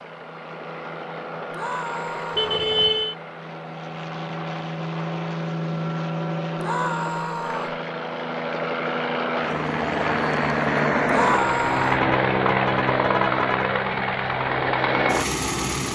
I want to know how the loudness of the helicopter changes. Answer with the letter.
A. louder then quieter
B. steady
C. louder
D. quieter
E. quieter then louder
C.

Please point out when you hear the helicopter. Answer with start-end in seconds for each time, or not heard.
0.0-15.8.